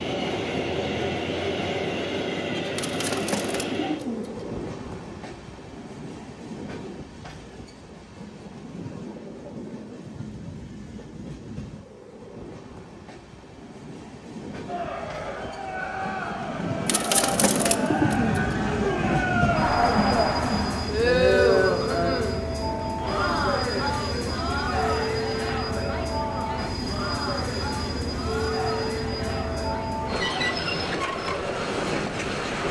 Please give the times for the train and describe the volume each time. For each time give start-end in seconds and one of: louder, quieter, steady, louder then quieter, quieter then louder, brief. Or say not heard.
0.0-32.6 quieter then louder.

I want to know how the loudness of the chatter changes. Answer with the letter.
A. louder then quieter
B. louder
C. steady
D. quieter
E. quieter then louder
A.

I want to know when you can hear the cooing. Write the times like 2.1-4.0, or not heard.
2.8-4.5, 16.9-18.6.